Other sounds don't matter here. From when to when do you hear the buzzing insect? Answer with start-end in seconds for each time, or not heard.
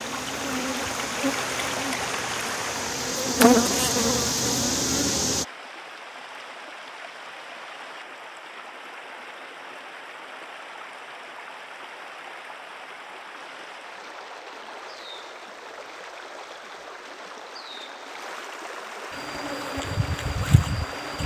0.0-5.5, 19.1-21.2.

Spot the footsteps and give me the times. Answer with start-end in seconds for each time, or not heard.
not heard.